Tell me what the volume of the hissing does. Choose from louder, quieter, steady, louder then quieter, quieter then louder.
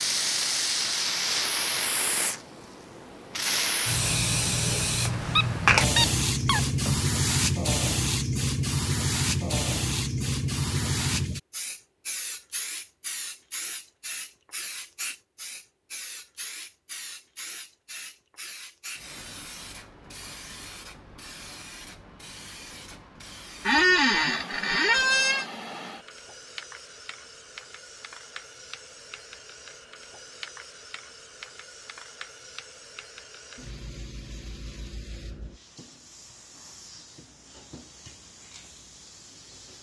quieter.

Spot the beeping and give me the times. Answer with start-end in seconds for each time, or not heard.
not heard.